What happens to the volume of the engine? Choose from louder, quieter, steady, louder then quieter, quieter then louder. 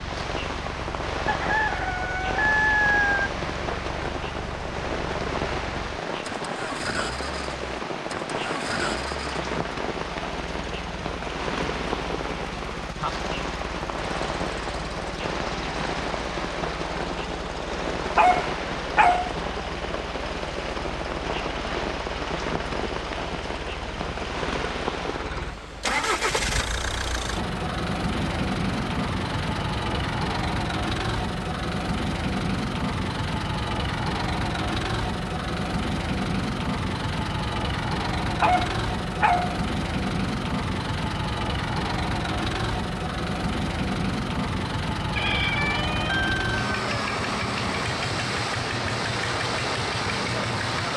louder.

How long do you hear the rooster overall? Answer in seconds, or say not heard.
4 s.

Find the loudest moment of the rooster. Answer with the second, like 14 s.
3 s.